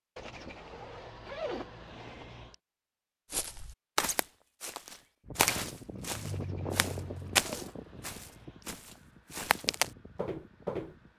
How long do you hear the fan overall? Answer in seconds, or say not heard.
6 s.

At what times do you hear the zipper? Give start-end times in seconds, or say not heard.
0.1-2.5, 6.2-8.7.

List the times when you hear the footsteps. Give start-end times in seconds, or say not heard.
3.3-10.9.